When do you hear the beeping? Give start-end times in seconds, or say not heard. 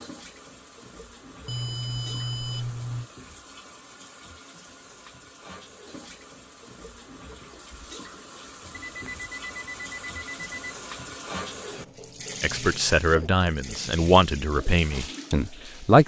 1.4-3.1, 8.7-10.7.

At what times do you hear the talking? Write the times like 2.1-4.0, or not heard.
12.4-16.0.